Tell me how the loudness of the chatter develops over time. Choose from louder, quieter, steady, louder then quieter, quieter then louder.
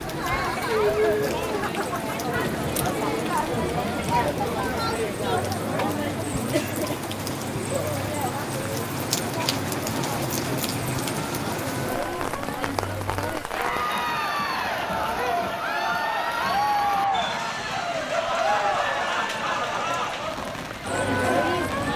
quieter then louder.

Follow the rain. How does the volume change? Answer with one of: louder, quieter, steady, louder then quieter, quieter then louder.
louder then quieter.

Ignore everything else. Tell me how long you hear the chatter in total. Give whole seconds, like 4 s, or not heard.
22 s.